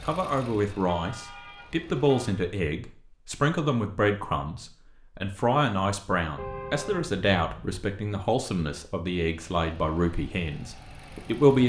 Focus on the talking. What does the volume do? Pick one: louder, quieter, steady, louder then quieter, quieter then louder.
steady.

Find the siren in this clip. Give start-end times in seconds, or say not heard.
not heard.